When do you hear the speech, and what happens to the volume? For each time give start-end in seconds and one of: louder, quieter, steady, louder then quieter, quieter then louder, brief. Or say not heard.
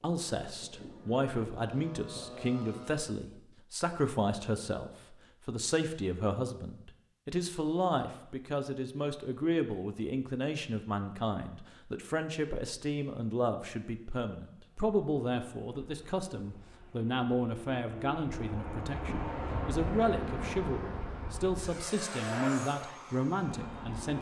0.0-24.1 steady.